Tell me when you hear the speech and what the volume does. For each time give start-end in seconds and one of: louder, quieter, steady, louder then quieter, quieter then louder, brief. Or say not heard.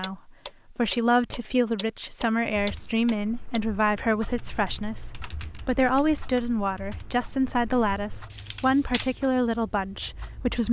0.0-10.6 steady.